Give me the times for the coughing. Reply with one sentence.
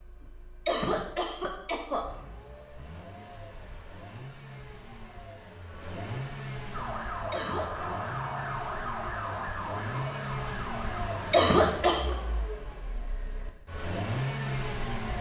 You can hear the coughing from 0.7 to 2.0 s, from 7.3 to 7.9 s and from 11.3 to 12.2 s.